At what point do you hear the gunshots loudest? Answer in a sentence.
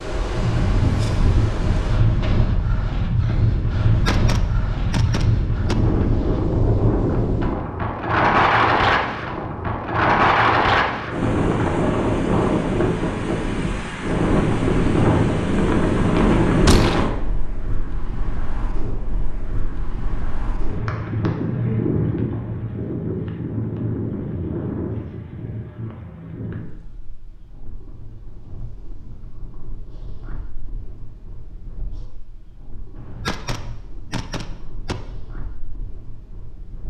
The loudest moment of the gunshots is at 17 seconds.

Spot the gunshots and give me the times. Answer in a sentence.
The gunshots can be heard from 3.9 to 5.8 s, from 16.6 to 17.1 s and from 33.0 to 35.0 s.